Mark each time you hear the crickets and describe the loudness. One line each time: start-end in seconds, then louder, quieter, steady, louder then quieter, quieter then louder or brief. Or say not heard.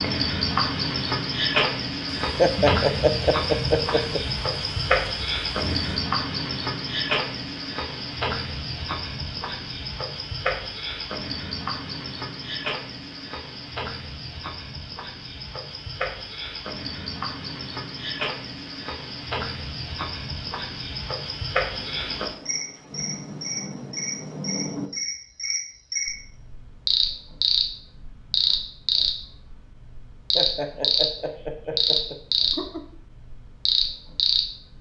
0.0-34.7 quieter then louder.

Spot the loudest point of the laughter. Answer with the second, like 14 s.
3 s.